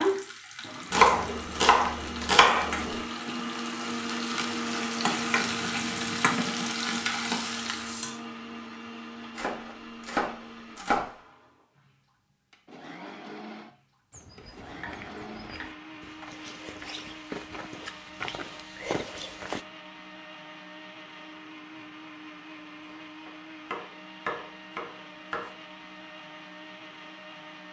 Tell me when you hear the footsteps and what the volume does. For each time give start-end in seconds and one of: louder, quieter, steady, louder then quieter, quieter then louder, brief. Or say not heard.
14.1-19.6 louder.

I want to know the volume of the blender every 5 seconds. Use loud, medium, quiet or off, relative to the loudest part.
loud, loud, medium, medium, medium, medium.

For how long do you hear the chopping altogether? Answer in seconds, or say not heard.
7 s.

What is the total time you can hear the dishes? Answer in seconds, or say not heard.
not heard.